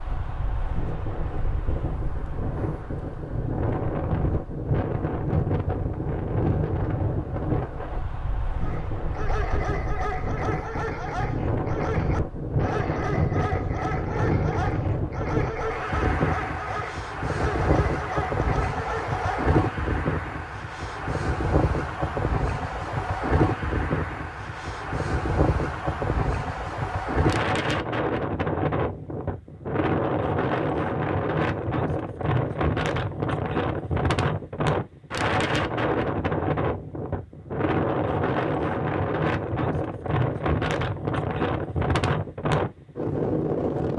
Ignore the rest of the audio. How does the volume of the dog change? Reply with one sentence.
The volume of the dog stays about the same.